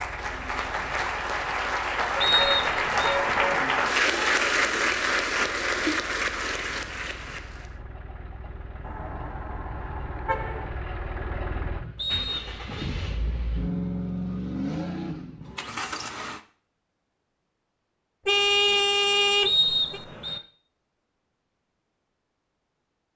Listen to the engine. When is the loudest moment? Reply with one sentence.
The volume of the engine peaks at 14 seconds.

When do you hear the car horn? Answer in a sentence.
You can hear the car horn from 2.1 to 3.4 s, from 8.8 to 10.7 s and from 18.2 to 20.0 s.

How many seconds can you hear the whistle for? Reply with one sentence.
The whistle can be heard for 3 seconds in total.